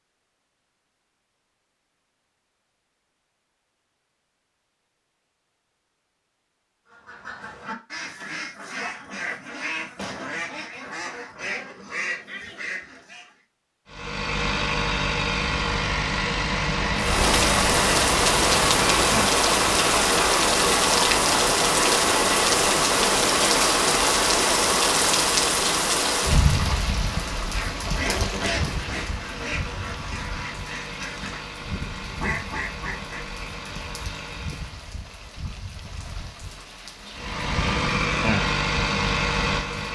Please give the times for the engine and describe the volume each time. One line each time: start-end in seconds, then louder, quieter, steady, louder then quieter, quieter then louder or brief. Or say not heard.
13.8-34.9 quieter
37.1-39.9 brief.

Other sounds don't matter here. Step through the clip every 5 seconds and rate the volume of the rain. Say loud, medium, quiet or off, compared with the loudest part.
off, off, off, loud, loud, medium, quiet, quiet.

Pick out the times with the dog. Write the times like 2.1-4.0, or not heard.
not heard.